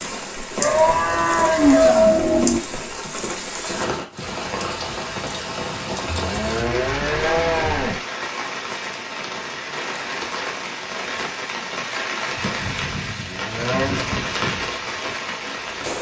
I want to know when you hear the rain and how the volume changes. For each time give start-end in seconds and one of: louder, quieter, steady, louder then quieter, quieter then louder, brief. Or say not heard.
0.0-15.9 steady.